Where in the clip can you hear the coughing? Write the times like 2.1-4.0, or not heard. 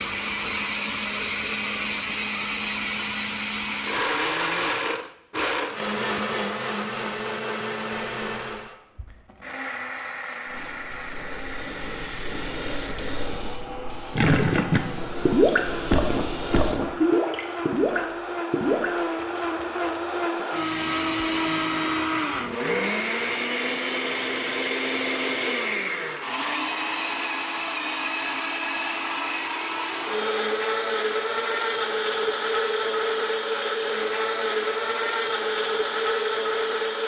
not heard.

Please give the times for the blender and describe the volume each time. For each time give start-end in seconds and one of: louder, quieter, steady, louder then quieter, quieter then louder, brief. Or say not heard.
0.0-37.0 quieter then louder.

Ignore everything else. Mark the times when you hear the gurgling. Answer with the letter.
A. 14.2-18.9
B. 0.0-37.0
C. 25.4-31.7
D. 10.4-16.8
A.